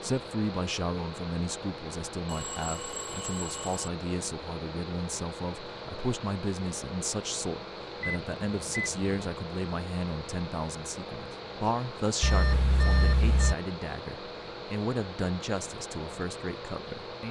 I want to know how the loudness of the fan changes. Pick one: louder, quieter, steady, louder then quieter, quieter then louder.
steady.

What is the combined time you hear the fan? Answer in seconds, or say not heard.
17 s.